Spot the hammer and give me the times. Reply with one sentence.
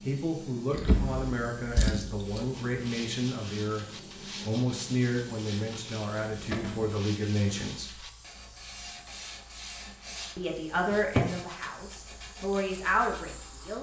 The hammer can't be heard in this clip.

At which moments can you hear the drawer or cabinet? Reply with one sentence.
You can hear the drawer or cabinet from 0.7 to 2.3 s, from 6.5 to 7.0 s and from 10.9 to 11.3 s.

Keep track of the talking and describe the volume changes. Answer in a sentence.
The loudness of the talking stays about the same.